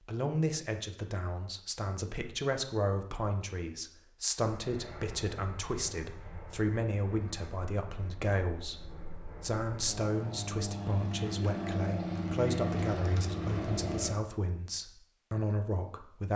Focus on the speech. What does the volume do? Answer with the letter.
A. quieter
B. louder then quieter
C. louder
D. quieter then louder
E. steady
E.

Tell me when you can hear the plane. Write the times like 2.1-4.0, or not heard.
4.5-14.1.